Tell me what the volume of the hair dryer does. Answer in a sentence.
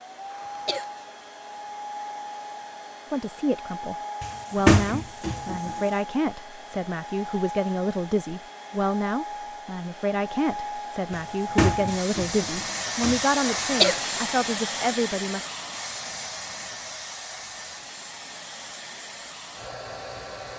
The volume of the hair dryer goes up, then down.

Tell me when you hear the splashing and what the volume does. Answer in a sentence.
You can't hear the splashing here.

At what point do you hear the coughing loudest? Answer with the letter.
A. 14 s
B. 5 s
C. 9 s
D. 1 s
A.